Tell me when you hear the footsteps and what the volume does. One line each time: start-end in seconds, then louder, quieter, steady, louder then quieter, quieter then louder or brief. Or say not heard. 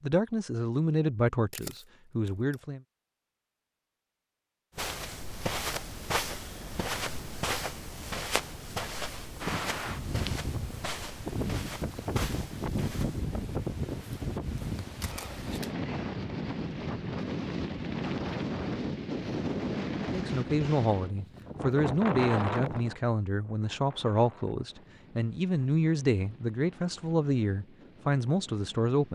4.8-13.2 quieter.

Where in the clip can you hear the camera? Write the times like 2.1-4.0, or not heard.
1.5-2.6, 15.0-15.8.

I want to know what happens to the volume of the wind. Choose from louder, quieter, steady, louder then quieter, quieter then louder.
quieter.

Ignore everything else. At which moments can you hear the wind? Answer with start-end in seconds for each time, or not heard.
9.4-29.1.